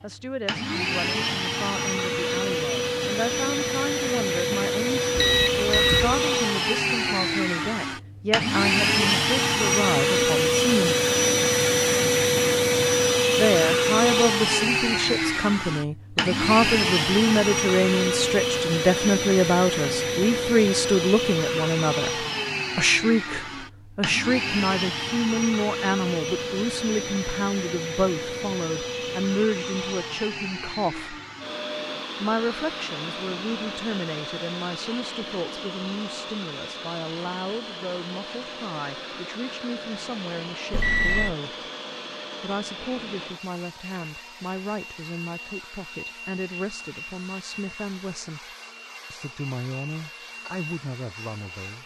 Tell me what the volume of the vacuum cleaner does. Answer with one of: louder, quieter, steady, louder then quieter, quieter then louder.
quieter.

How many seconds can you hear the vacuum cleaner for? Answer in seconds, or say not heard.
52 s.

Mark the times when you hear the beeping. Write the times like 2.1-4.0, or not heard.
5.2-6.2, 40.7-41.4.